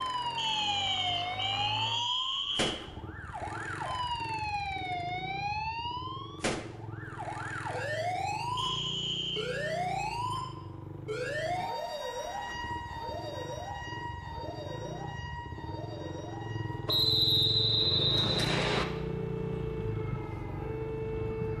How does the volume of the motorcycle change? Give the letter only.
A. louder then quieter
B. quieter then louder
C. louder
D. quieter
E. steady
C.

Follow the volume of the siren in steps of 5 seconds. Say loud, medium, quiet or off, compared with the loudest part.
loud, loud, loud, medium, loud.